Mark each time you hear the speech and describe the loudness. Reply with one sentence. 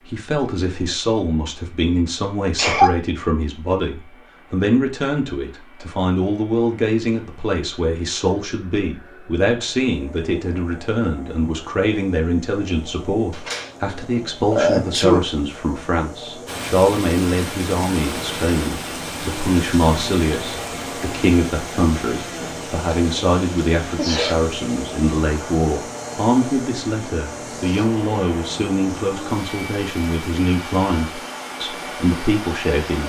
You can hear the speech from 0.0 to 33.0 s, at a steady volume.